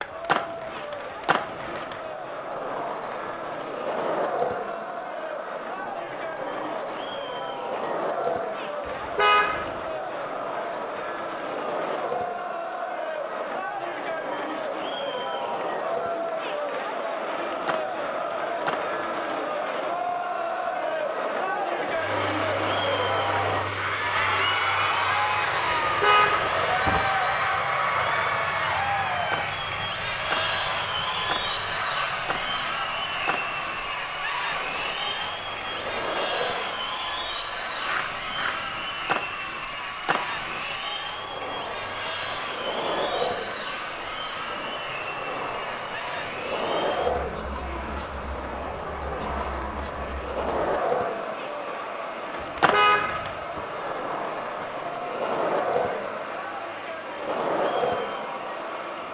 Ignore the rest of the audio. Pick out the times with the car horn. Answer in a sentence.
You can hear the car horn from 8.8 to 9.8 s, from 25.9 to 27.1 s and from 52.4 to 53.6 s.